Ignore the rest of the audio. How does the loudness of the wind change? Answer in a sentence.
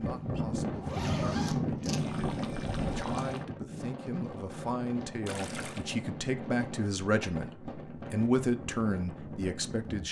The loudness of the wind goes down.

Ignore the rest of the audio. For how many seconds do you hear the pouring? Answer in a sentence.
The pouring can be heard for 2 seconds in total.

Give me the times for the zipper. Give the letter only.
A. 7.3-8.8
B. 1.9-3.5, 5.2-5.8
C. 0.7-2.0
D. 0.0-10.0
C.